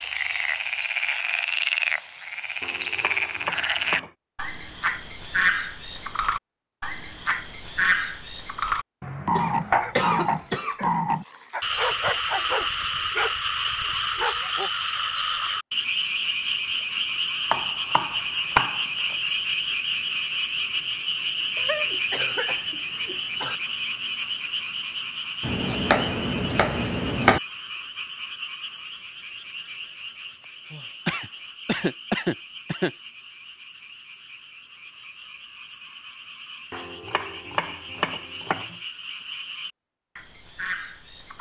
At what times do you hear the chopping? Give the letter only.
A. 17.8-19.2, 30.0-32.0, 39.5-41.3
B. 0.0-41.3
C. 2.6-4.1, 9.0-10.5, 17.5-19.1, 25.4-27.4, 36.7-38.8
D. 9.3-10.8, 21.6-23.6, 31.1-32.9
C.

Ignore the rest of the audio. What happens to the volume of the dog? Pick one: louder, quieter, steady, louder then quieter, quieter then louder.
louder.